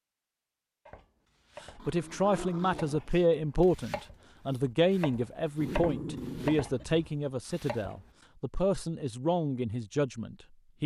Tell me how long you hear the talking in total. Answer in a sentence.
You can hear the talking for 9 seconds altogether.